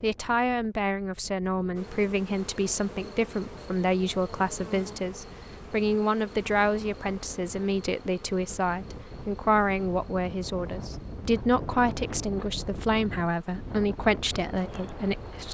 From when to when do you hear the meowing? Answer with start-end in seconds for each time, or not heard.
not heard.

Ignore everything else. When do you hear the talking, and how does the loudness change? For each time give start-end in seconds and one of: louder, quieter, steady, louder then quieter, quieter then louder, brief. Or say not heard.
0.0-15.4 steady.